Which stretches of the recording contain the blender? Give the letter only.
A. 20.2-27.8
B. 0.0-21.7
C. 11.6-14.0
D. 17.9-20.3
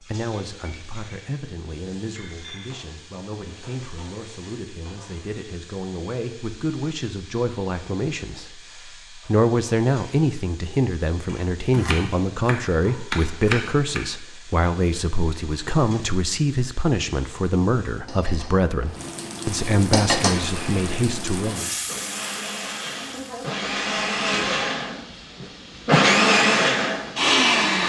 A.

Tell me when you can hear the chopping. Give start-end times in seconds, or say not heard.
11.6-14.0.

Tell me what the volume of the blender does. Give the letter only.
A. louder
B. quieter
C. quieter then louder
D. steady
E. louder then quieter
A.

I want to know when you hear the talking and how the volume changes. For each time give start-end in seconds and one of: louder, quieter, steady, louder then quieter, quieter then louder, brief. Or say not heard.
0.0-21.7 louder.